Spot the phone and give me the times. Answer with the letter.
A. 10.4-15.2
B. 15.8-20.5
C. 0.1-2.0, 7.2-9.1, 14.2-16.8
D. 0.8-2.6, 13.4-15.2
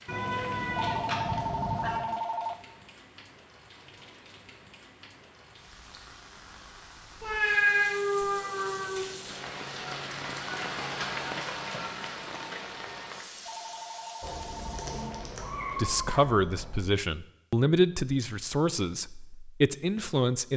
D.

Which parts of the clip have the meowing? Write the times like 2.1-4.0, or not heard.
0.1-2.0, 7.2-9.1, 14.2-16.8.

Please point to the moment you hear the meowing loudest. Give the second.
8 s.